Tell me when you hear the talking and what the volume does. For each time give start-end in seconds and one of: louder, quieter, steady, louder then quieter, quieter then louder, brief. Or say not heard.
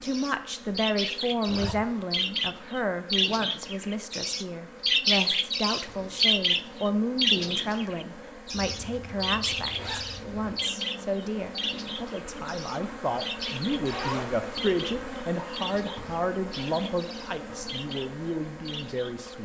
0.0-19.3 steady.